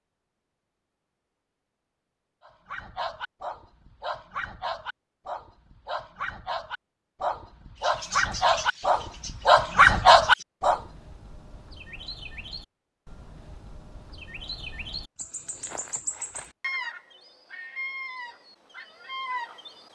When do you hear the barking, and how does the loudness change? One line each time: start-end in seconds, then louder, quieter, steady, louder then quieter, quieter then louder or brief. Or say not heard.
2.5-10.8 louder.